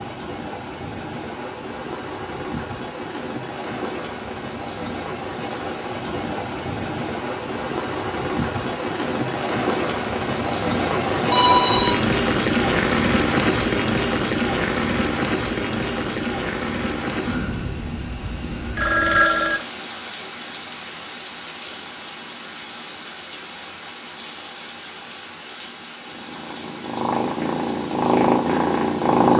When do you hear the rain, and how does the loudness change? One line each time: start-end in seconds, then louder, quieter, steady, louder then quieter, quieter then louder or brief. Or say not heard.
0.0-29.3 louder then quieter.